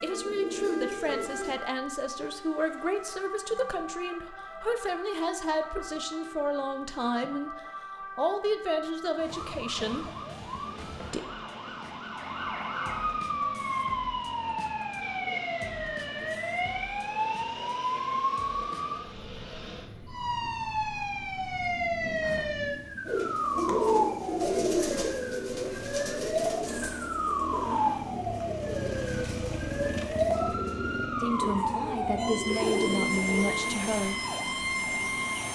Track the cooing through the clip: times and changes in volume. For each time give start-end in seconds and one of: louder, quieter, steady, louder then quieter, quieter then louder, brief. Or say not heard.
0.0-1.6 brief
23.1-34.0 quieter then louder.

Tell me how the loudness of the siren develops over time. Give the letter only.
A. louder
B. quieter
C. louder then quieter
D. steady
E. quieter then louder
A.